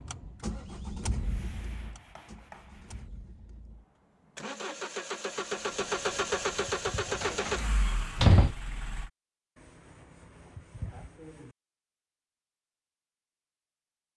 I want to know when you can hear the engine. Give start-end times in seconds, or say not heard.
0.0-9.1.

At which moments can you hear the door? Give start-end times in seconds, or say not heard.
7.2-8.6.